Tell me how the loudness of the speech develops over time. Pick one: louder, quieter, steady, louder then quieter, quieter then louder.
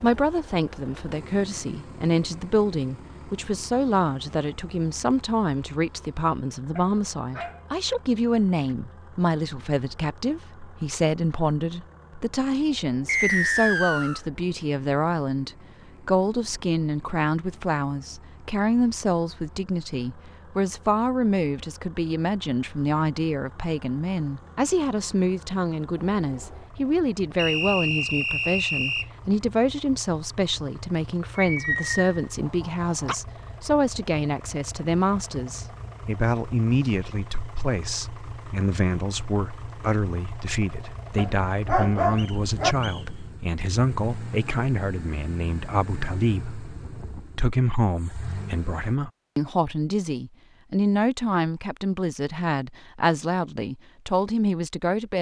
steady.